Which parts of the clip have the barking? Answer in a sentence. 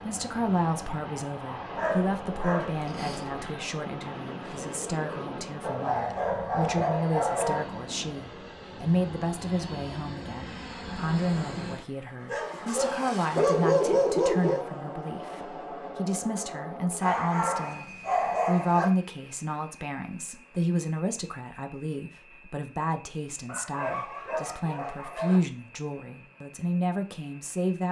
The barking can be heard from 1.8 to 3.5 s, from 5.6 to 7.7 s, from 12.2 to 14.7 s, from 17.0 to 18.9 s and from 23.4 to 25.4 s.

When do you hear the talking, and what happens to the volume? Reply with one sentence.
You can hear the talking from 0.0 to 27.8 s, at a steady volume.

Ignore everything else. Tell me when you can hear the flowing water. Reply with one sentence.
The flowing water can't be heard in this clip.